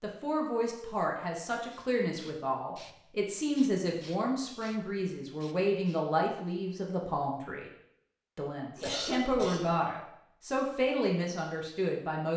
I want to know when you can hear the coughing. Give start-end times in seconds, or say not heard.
8.8-9.7.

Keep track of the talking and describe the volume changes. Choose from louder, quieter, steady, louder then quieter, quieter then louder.
steady.